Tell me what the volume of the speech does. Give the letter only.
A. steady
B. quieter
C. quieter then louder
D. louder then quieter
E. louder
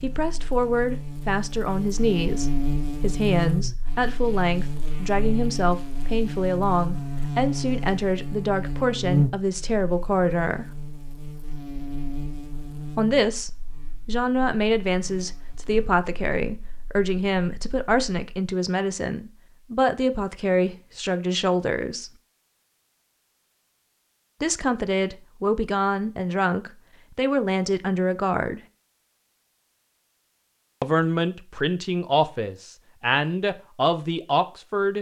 A.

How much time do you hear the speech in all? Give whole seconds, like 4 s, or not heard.
28 s.